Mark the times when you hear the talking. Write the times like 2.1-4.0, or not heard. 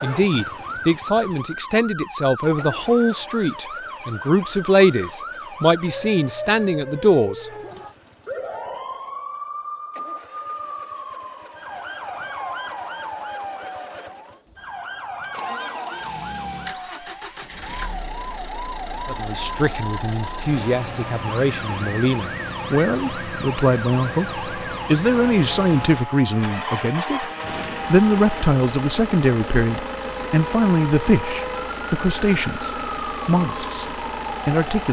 0.0-7.5, 19.1-27.2, 27.9-34.8.